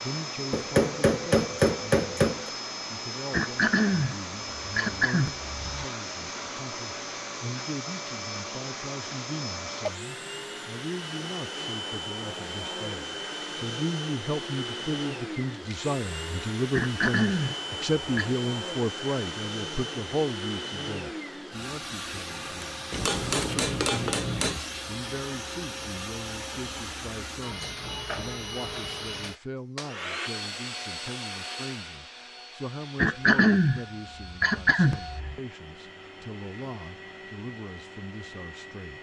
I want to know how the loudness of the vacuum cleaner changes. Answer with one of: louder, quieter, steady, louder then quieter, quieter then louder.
quieter.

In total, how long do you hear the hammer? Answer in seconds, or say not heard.
4 s.